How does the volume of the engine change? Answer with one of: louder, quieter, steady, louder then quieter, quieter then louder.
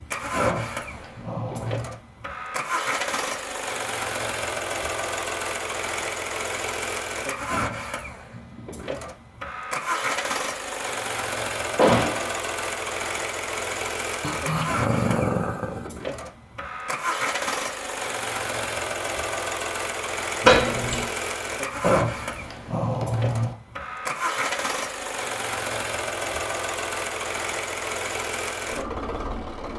steady.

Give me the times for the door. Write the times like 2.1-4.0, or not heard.
11.8-12.3, 20.4-21.1.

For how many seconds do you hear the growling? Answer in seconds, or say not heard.
5 s.